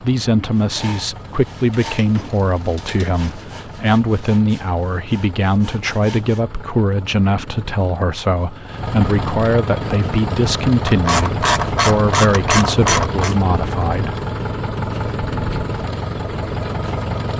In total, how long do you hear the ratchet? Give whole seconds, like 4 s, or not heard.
4 s.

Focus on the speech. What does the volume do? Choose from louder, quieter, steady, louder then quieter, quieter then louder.
steady.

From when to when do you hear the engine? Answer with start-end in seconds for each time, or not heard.
0.0-17.3.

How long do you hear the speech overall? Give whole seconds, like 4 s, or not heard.
14 s.